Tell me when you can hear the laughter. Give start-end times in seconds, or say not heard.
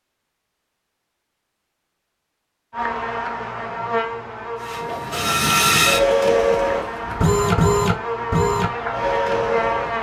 not heard.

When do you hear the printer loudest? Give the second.
6 s.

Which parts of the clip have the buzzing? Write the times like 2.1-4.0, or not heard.
2.7-9.9.